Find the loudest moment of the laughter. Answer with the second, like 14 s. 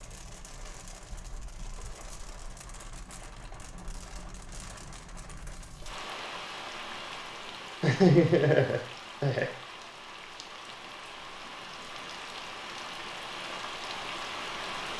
8 s.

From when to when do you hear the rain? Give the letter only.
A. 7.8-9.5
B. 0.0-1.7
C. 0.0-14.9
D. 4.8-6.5
C.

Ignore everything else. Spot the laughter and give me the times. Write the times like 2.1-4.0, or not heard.
7.8-9.5.